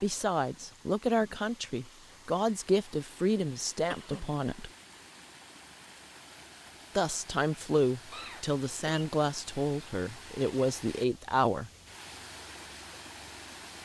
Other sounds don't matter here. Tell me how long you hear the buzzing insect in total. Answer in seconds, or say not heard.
not heard.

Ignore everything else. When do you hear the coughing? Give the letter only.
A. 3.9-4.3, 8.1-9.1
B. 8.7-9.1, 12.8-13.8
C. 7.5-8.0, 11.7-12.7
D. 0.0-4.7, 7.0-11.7
A.